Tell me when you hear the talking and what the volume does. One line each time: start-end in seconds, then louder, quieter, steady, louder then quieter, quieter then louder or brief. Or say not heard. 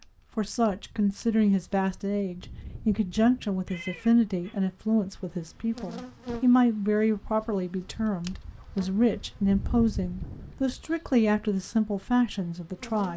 0.3-13.1 steady.